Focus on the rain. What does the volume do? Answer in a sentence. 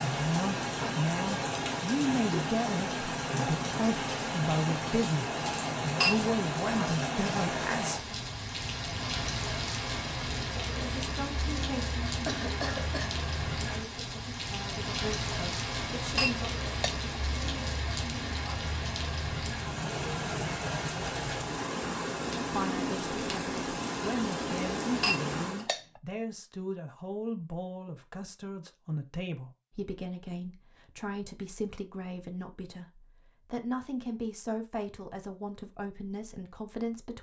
The loudness of the rain stays about the same.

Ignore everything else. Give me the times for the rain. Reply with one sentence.
The rain can be heard from 0.0 to 25.7 s.